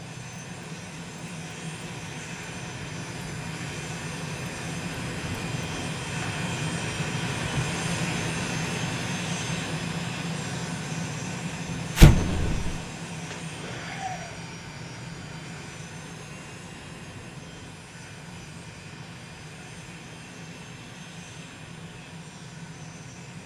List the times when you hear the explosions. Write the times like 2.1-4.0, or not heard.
11.9-12.8.